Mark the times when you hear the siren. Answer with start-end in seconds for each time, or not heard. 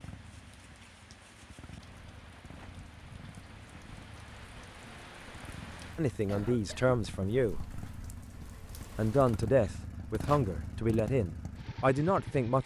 not heard.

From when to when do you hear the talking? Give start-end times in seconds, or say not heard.
6.0-7.7, 8.9-12.6.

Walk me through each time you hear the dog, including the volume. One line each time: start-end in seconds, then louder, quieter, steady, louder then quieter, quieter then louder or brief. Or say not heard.
not heard.